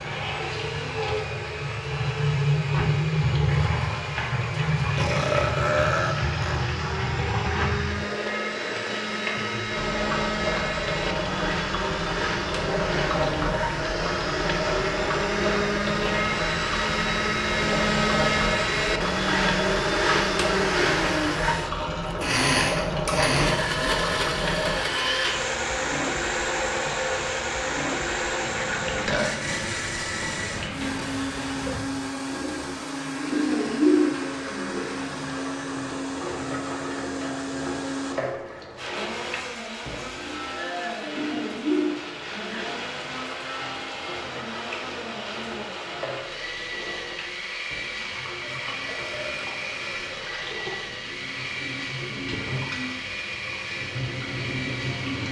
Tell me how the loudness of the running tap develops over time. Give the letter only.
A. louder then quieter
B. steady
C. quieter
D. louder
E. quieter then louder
C.